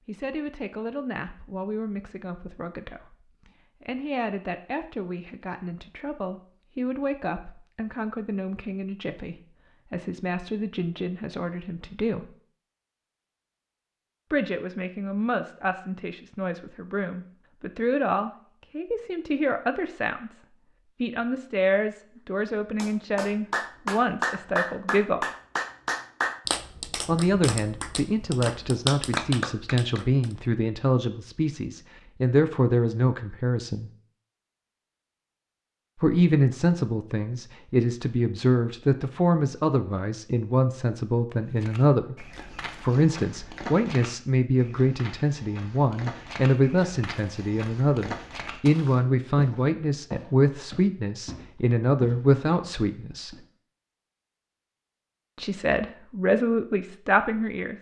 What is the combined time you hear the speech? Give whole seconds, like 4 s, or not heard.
49 s.